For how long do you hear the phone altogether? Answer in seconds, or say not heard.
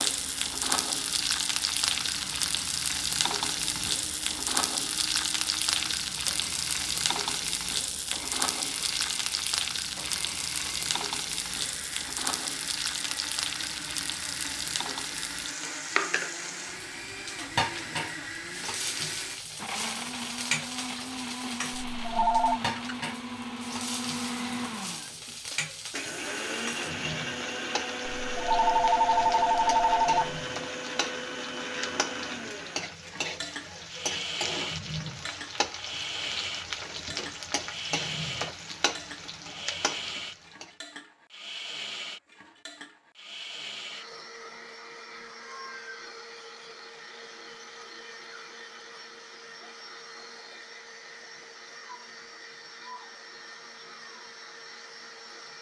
3 s.